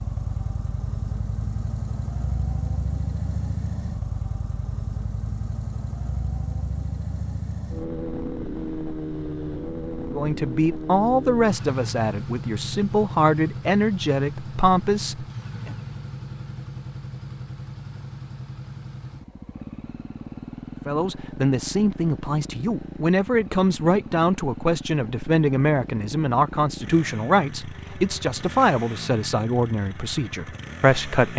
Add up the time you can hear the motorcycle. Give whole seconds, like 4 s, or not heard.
31 s.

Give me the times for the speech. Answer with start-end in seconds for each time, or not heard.
10.1-15.8, 20.9-31.3.